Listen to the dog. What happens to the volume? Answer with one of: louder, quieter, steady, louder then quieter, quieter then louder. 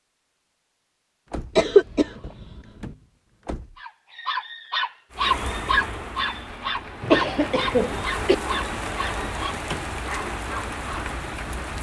quieter.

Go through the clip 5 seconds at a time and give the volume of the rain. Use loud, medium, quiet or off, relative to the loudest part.
off, loud, loud.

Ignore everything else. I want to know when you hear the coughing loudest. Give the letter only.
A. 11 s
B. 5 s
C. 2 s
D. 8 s
C.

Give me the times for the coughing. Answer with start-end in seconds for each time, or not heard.
1.6-2.6, 7.0-8.3.